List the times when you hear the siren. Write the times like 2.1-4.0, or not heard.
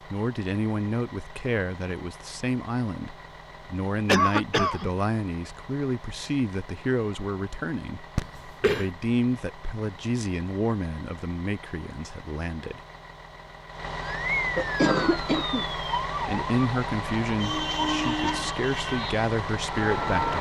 14.0-20.3.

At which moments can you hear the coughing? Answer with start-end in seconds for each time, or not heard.
4.0-4.9, 8.2-8.9, 14.2-15.7.